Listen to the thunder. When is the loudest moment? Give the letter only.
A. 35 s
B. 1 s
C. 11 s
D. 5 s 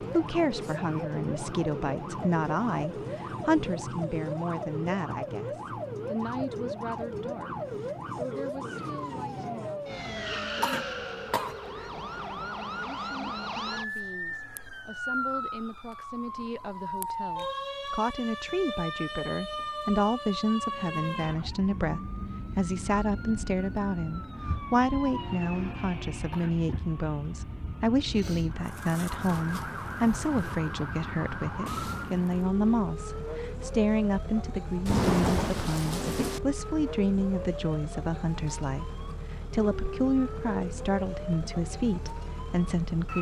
A.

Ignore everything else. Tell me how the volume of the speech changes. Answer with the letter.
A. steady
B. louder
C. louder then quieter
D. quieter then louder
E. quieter
D.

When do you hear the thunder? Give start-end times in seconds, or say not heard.
34.9-36.4.